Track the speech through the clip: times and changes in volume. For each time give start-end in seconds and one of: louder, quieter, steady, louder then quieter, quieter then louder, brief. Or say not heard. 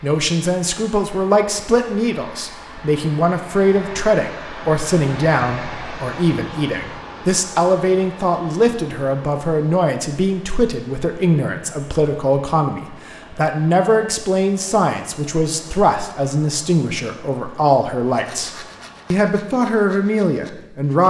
0.0-18.5 steady
19.1-21.0 brief.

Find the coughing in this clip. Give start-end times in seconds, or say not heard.
not heard.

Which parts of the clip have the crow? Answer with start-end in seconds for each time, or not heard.
not heard.